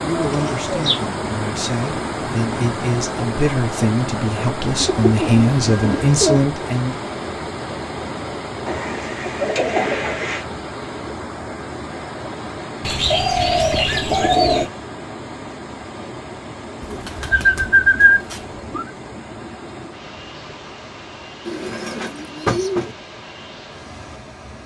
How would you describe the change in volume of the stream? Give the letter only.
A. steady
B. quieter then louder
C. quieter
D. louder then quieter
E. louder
C.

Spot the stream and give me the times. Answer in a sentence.
You can hear the stream from 0.0 to 24.6 s.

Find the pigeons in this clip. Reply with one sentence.
The pigeons can be heard from 0.2 to 1.1 s, from 4.8 to 6.5 s, from 8.7 to 10.4 s, from 12.8 to 14.7 s, from 16.8 to 18.9 s and from 21.4 to 22.9 s.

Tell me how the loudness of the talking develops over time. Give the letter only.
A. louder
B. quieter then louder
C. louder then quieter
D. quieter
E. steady
A.